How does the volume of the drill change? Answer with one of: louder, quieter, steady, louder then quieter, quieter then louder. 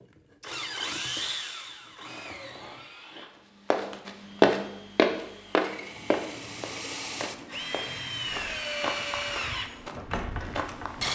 quieter then louder.